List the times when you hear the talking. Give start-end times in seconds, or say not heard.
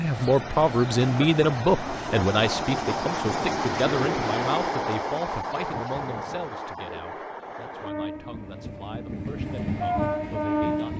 0.0-10.9.